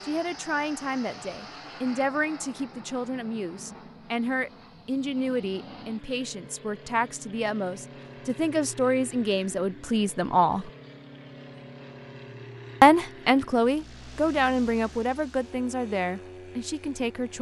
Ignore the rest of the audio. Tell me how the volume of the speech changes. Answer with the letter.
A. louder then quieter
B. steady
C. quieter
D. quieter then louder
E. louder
A.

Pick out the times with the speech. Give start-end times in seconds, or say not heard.
0.0-10.7, 12.8-17.3.